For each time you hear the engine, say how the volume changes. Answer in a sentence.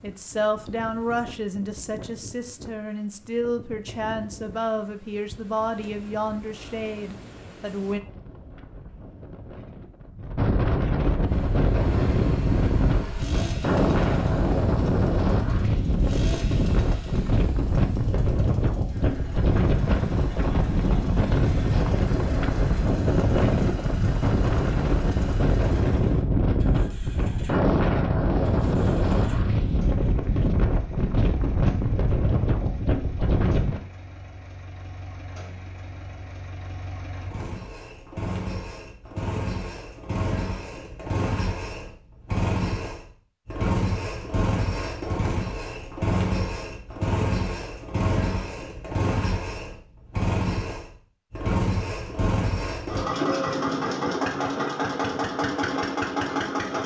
You can hear the engine from 11.2 to 56.8 s, getting louder.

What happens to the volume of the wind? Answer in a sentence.
The volume of the wind goes up.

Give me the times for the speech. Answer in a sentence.
The speech can be heard from 0.0 to 8.0 s.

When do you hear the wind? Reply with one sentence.
You can hear the wind from 0.0 to 33.8 s.